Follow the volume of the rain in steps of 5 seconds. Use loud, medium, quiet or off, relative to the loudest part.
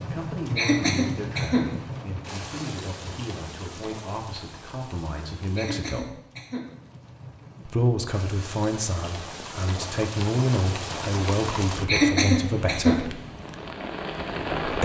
loud, medium, loud.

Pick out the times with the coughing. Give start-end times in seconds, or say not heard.
0.6-1.7, 5.5-6.7, 11.8-12.9.